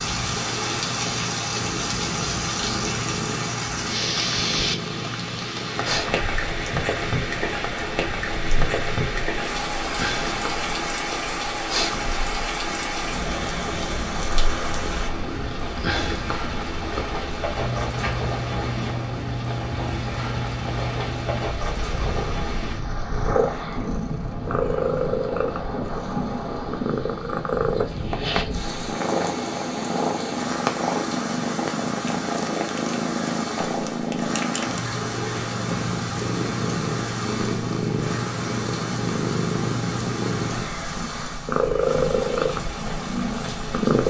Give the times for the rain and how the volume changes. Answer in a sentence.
You can hear the rain from 0.0 to 44.0 s, getting quieter.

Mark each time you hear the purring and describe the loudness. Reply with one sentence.
The purring can be heard from 0.0 to 44.0 s, getting louder.